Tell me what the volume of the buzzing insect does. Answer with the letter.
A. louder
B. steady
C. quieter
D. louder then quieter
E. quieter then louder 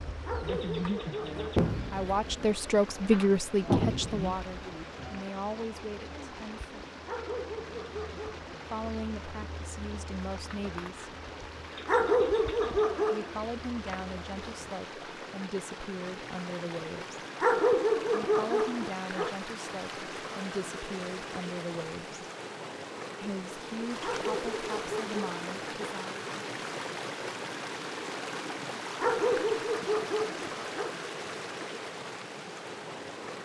C.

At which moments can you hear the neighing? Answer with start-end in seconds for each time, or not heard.
not heard.